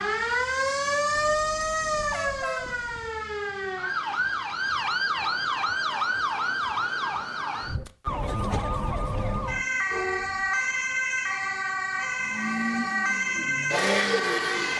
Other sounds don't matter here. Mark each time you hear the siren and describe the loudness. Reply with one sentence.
The siren can be heard from 0.0 to 14.7 s, at a steady volume.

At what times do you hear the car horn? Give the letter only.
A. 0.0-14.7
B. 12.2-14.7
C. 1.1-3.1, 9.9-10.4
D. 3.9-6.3
C.